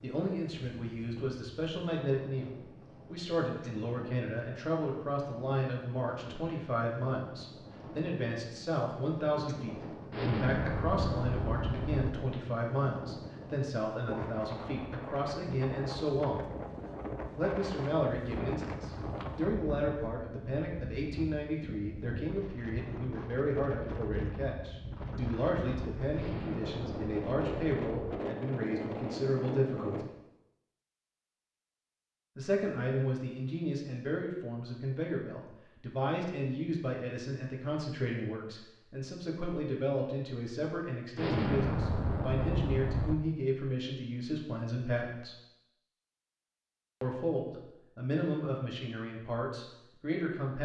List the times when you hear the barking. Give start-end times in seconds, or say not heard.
not heard.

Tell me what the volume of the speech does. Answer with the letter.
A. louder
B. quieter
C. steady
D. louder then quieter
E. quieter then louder
C.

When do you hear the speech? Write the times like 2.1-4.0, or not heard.
0.0-16.4, 17.4-30.1, 32.4-45.4, 47.0-50.6.